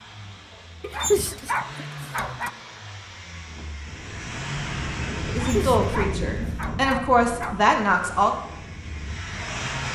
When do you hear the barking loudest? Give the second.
1 s.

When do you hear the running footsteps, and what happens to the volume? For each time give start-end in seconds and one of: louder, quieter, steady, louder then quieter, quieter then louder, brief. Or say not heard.
not heard.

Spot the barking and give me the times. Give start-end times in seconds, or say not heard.
0.8-2.5, 5.2-7.8.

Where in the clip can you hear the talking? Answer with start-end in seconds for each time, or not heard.
5.2-8.3.